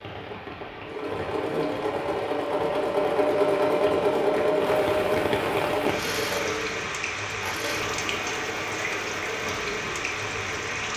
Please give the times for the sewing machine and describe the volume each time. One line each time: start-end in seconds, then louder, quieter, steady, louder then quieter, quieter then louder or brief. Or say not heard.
0.0-10.8 louder then quieter.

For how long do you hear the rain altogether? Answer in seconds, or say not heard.
11 s.